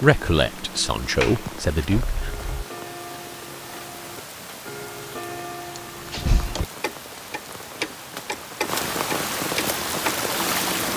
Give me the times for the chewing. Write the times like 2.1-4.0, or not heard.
not heard.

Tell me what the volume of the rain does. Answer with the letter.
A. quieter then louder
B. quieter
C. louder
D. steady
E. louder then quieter
C.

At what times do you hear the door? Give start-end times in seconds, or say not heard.
1.2-2.6, 5.8-6.7.